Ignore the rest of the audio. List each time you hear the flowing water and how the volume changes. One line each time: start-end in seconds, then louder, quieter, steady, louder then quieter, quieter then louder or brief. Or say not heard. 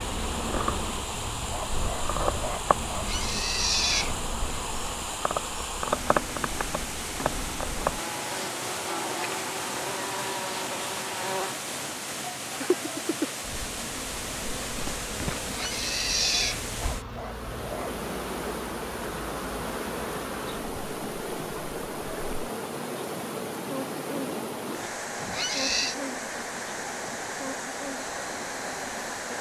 0.0-29.3 steady.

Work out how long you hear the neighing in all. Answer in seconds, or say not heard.
3 s.